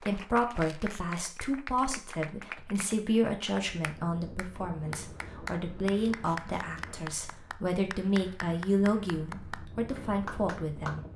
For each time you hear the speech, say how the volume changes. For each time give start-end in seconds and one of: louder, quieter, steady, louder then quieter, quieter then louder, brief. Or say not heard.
0.0-11.1 steady.